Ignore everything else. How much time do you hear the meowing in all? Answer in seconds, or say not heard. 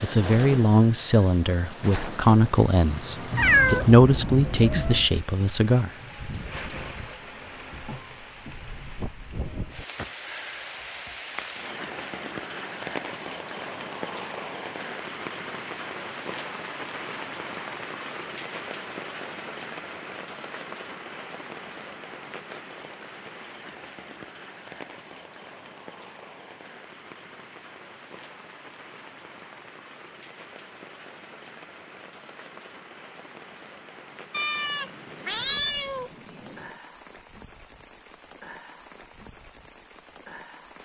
4 s.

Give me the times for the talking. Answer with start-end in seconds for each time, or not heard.
0.0-5.9.